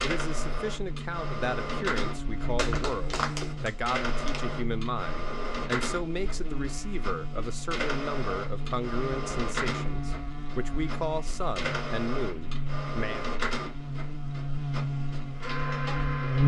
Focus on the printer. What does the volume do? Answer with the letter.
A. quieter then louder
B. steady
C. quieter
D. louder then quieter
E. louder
B.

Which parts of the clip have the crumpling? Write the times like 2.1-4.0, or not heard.
2.5-4.4.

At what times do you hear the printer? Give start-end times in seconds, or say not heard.
0.0-16.4.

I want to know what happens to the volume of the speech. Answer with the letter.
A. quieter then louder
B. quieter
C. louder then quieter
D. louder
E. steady
E.